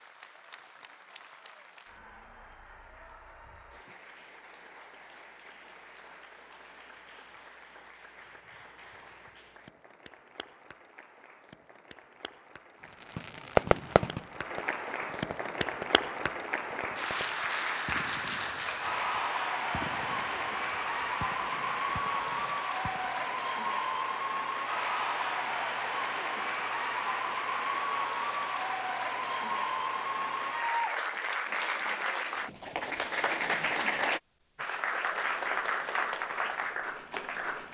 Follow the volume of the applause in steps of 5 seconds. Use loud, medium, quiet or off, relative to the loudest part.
quiet, quiet, quiet, loud, loud, loud, loud, loud.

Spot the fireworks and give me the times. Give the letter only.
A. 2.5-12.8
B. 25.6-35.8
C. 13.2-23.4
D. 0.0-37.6
C.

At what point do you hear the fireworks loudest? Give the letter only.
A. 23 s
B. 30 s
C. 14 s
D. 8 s
C.